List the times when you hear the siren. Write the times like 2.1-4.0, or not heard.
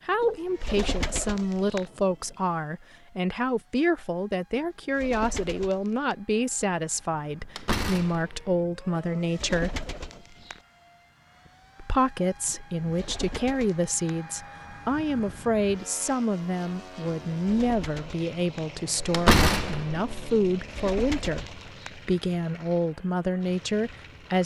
not heard.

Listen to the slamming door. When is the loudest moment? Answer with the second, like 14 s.
19 s.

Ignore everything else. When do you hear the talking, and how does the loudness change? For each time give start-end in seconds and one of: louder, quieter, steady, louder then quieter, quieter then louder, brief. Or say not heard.
0.1-9.8 steady
11.8-24.4 steady.